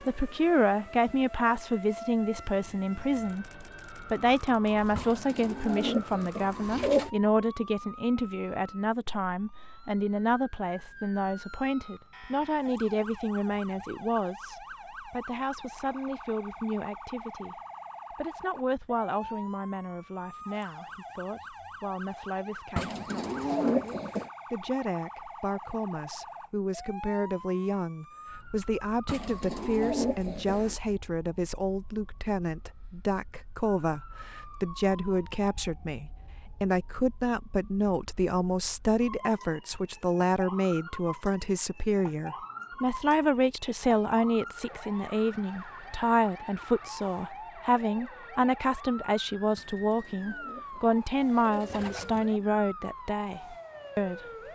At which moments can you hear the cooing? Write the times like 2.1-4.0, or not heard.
5.0-7.1, 22.8-24.3, 29.1-30.8, 49.5-52.5.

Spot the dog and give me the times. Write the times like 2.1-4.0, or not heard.
not heard.